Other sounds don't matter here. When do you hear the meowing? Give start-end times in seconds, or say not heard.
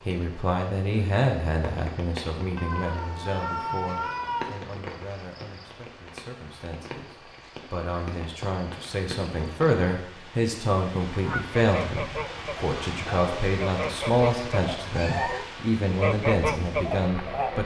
2.5-4.6, 14.9-15.5.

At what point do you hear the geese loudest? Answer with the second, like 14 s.
16 s.